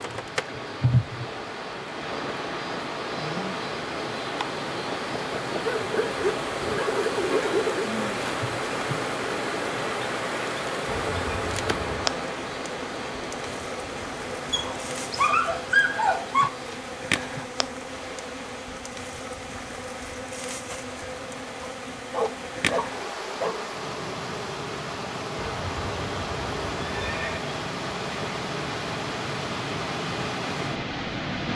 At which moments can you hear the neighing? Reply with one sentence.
The neighing can be heard from 10.8 to 12.2 s and from 25.4 to 27.4 s.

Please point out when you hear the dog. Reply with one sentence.
You can hear the dog from 5.6 to 7.8 s, from 14.5 to 16.5 s and from 21.6 to 23.6 s.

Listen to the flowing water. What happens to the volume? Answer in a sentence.
The loudness of the flowing water goes down, then up.